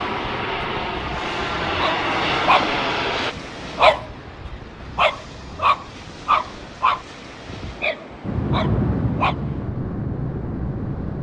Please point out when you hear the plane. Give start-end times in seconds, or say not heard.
0.0-3.4, 8.2-11.1.